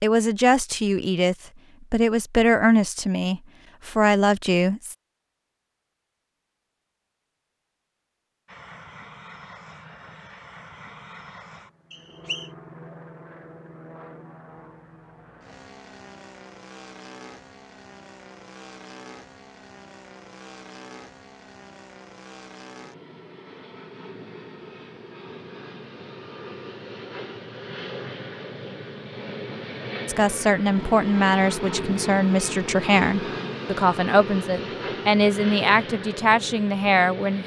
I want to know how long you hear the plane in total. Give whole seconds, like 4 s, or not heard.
29 s.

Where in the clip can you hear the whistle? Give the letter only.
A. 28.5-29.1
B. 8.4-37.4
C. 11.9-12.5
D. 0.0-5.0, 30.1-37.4
C.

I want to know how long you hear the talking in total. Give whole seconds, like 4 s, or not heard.
12 s.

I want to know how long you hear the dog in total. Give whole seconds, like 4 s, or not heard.
not heard.